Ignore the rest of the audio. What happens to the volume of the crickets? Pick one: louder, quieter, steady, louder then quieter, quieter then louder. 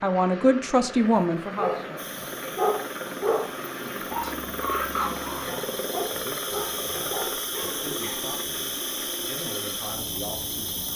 louder.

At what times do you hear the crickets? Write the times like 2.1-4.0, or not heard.
1.9-10.9.